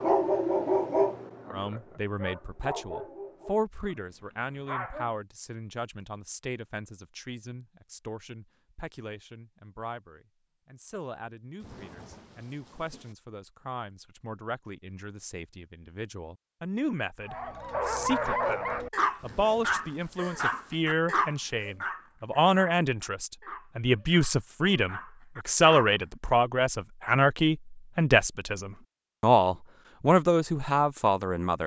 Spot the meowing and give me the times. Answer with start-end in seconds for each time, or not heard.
not heard.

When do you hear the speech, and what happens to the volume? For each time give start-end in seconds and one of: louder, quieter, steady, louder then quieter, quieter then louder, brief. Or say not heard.
1.5-31.6 quieter then louder.